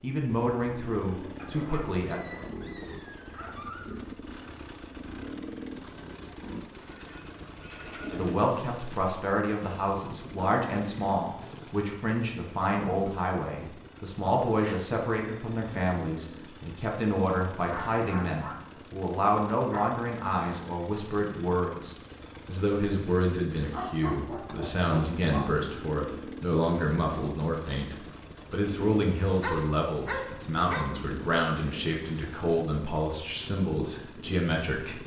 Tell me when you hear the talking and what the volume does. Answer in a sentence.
The talking can be heard briefly from 0.0 to 2.2 s; and from 8.1 to 35.0 s, at a steady volume.